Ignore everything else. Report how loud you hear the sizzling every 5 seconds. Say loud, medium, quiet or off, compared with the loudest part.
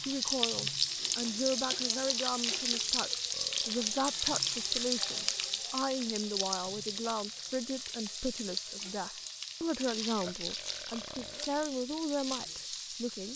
loud, medium, medium.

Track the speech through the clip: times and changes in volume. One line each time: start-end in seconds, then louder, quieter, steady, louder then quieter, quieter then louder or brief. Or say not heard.
0.0-13.3 steady.